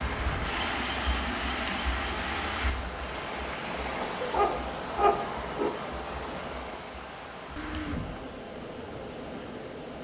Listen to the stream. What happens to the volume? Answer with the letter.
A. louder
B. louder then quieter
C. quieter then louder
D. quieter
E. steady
D.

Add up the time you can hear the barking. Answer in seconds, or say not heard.
2 s.